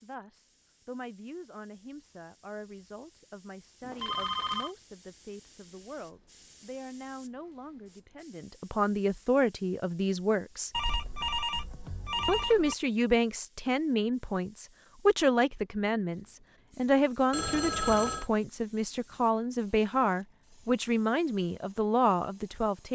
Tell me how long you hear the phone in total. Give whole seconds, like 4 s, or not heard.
4 s.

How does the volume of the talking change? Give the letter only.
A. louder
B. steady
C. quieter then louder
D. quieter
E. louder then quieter
A.